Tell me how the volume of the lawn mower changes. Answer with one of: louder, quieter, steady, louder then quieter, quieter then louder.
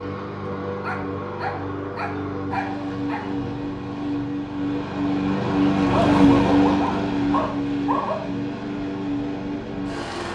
louder then quieter.